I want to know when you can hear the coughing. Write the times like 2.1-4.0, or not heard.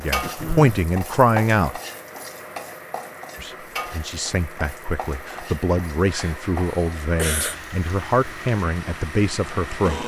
0.2-0.8, 6.1-7.5.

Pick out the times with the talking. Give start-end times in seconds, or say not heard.
0.0-1.8, 3.4-10.0.